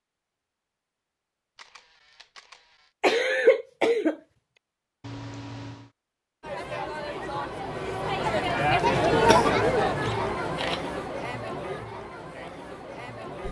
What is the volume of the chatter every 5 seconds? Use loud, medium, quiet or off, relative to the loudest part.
off, loud, medium.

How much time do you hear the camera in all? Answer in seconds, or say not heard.
3 s.